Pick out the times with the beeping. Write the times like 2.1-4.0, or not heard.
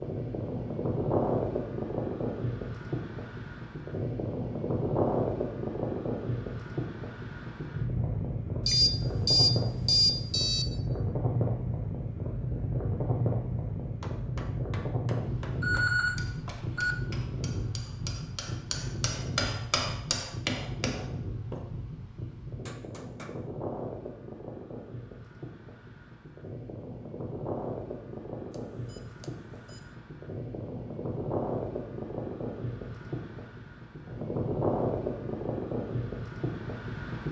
8.7-10.7, 15.4-16.9, 28.5-29.8.